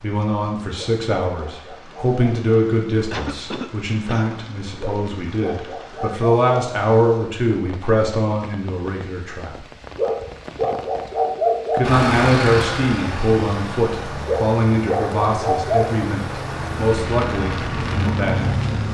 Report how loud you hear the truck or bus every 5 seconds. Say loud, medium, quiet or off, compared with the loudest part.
off, off, loud, loud.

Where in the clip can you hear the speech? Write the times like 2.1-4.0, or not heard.
0.0-9.7, 11.7-18.6.